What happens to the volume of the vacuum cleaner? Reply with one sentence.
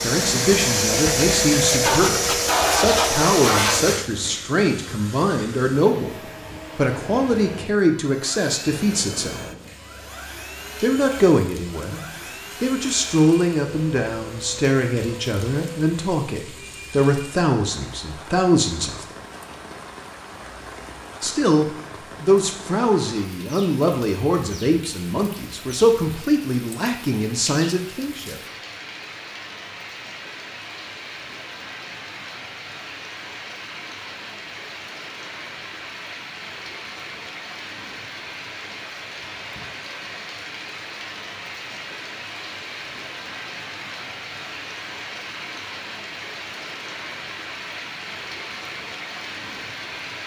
The volume of the vacuum cleaner goes down.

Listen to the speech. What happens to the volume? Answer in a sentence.
The loudness of the speech stays about the same.